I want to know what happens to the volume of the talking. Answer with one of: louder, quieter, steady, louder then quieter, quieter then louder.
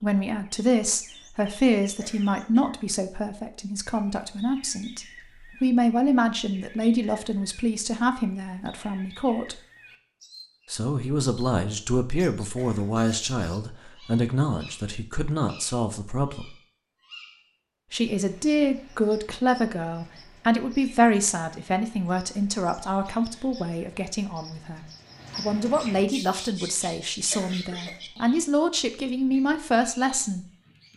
steady.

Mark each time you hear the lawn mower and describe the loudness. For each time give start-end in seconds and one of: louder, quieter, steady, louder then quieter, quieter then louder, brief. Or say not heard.
not heard.